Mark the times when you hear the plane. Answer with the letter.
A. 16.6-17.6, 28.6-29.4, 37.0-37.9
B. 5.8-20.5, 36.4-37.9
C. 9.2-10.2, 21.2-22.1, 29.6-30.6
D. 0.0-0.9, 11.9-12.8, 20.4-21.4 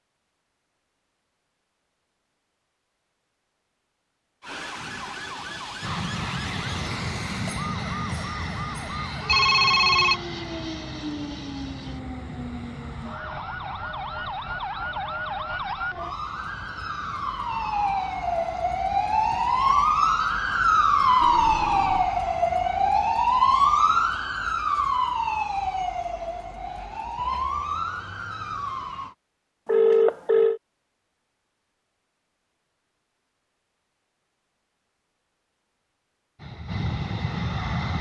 B.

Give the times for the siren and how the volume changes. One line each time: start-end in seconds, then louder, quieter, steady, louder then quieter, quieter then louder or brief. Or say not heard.
4.4-29.1 louder then quieter.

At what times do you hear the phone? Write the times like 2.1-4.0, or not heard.
9.2-10.2, 21.2-22.1, 29.6-30.6.